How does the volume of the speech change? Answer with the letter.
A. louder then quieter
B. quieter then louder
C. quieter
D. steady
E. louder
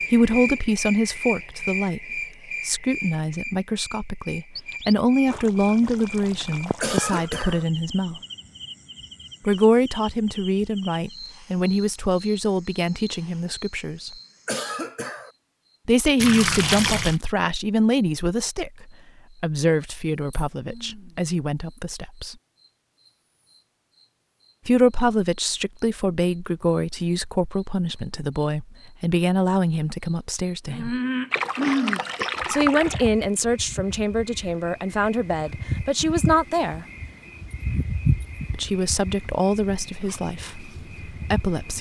D.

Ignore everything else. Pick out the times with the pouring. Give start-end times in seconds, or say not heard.
4.5-7.3, 16.2-17.2, 31.3-33.1.